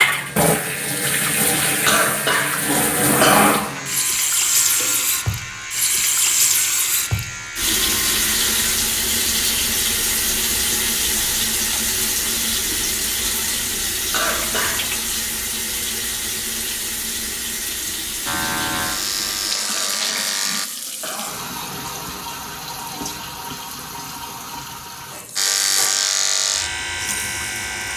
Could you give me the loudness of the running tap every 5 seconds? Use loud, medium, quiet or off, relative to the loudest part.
loud, loud, loud, medium, medium, quiet.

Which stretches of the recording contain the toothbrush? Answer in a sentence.
The toothbrush can't be heard in this clip.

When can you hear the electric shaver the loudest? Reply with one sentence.
The loudest moment of the electric shaver is at 26 seconds.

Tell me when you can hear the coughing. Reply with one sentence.
You can hear the coughing from 1.9 to 3.5 s, from 14.1 to 15.1 s and from 19.6 to 21.4 s.